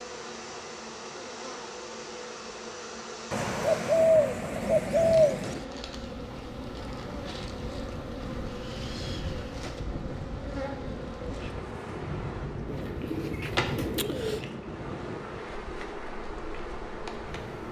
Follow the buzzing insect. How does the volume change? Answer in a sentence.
The volume of the buzzing insect stays about the same.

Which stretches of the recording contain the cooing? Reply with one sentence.
You can hear the cooing from 3.3 to 5.7 s and from 12.7 to 14.4 s.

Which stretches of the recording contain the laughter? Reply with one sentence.
The laughter can't be heard in this clip.